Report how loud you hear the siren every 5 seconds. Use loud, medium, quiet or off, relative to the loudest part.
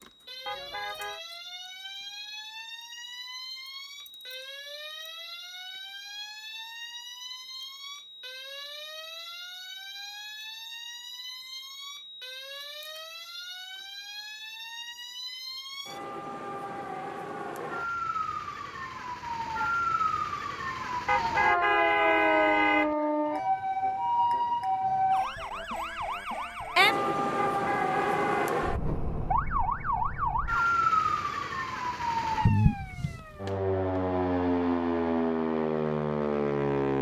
quiet, quiet, quiet, medium, loud, loud, loud, loud.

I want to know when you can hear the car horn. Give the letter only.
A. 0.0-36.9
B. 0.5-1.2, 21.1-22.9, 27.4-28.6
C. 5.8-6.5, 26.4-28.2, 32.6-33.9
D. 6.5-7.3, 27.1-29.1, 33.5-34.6
B.